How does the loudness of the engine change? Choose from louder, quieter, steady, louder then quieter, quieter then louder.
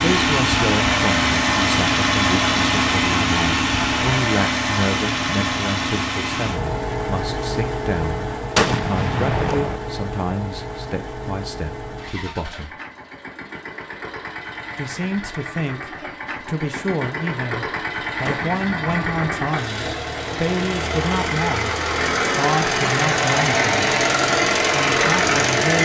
quieter then louder.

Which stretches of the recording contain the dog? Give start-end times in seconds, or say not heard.
not heard.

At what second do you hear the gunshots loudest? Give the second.
9 s.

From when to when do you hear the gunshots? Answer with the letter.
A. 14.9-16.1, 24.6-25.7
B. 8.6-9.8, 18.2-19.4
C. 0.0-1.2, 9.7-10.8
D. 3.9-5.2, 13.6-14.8
B.